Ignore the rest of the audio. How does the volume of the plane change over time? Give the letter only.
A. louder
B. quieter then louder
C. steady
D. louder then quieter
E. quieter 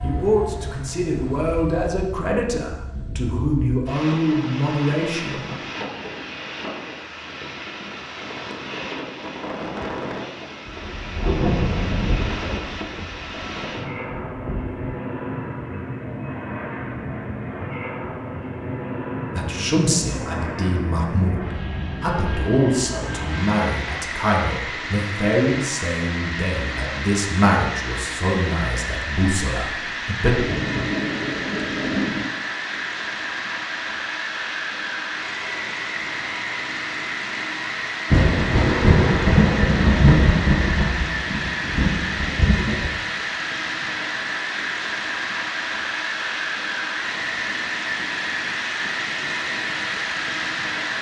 A.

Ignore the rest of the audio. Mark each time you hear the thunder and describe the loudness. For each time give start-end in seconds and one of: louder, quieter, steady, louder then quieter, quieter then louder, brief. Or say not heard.
10.7-13.4 brief
14.3-14.8 brief
30.2-32.2 brief
38.1-42.9 quieter then louder.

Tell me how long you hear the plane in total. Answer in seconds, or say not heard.
51 s.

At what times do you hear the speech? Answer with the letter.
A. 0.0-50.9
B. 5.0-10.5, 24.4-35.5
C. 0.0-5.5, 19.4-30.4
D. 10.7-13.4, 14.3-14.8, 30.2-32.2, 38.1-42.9
C.